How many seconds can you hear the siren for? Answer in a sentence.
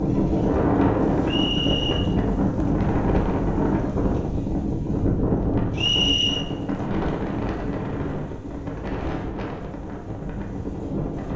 The siren can't be heard in this clip.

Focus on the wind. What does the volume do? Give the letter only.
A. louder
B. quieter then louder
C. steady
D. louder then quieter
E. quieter
E.